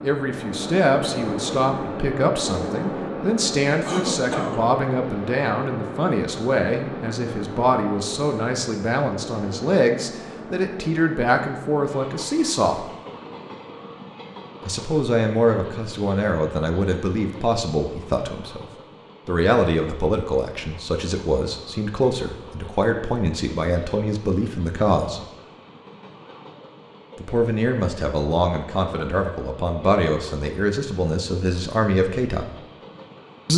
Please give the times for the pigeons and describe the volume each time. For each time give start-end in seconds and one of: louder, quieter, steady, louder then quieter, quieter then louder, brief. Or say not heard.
not heard.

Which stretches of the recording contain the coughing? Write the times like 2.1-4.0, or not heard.
3.9-4.6.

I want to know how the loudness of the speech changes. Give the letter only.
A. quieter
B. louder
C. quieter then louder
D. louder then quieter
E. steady
E.